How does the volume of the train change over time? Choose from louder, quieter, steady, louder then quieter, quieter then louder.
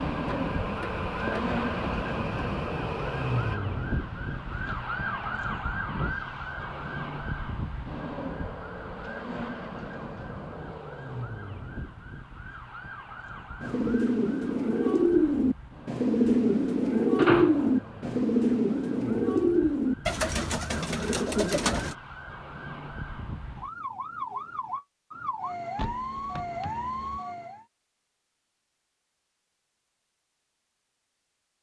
quieter.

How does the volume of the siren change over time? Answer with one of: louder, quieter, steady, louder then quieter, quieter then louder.
quieter then louder.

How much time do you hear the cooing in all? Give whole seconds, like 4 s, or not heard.
8 s.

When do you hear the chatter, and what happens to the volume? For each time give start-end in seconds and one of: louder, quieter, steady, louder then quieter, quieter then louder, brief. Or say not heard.
not heard.